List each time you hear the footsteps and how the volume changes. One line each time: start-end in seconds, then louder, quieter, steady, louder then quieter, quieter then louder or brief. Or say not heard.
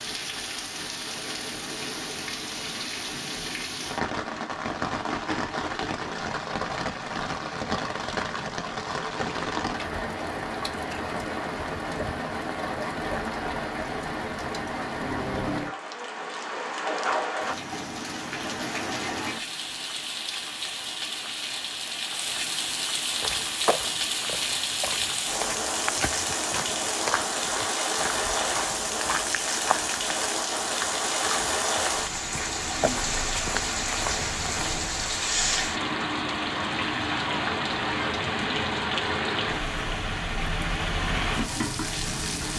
23.1-34.9 steady.